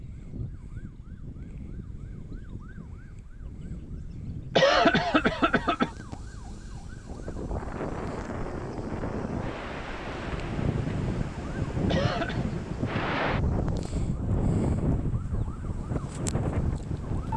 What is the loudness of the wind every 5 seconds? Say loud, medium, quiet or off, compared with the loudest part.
off, medium, loud, loud.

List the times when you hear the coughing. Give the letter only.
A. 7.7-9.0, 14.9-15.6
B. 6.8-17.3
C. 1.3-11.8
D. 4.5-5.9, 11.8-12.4
D.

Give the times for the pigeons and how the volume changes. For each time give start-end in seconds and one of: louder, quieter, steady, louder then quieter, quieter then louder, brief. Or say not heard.
not heard.